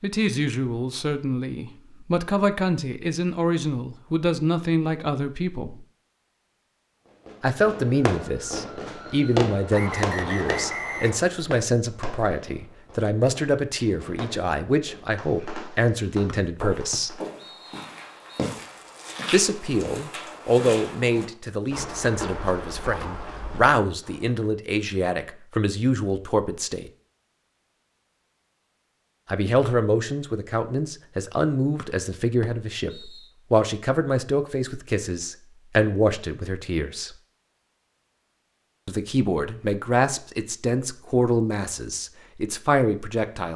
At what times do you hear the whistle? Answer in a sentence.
The whistle can be heard from 9.7 to 11.3 s, from 16.2 to 18.4 s and from 31.8 to 33.3 s.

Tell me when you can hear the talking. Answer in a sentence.
You can hear the talking from 0.0 to 5.8 s, from 7.4 to 17.2 s, from 19.3 to 26.9 s, from 29.2 to 37.1 s and from 38.9 to 43.5 s.